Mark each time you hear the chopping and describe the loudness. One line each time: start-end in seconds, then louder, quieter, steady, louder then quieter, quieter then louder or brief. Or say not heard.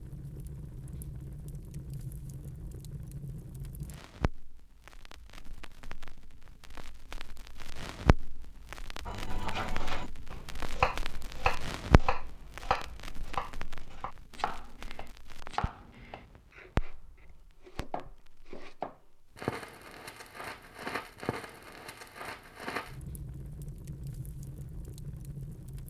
9.1-19.0 quieter.